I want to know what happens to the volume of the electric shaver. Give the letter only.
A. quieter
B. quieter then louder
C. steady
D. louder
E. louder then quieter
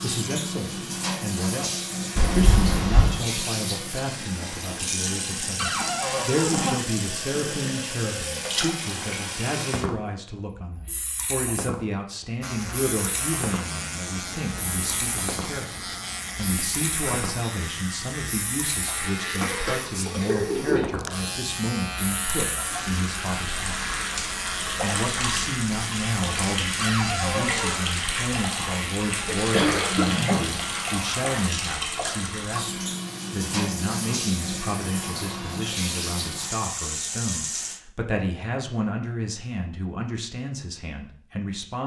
C.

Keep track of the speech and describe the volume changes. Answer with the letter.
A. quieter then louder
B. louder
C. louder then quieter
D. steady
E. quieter
D.